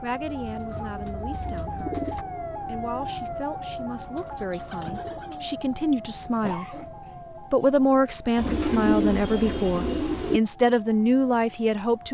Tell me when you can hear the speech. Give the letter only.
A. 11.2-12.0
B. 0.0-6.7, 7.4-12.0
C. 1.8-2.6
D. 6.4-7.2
B.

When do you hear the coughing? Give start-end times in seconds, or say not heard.
6.4-7.2.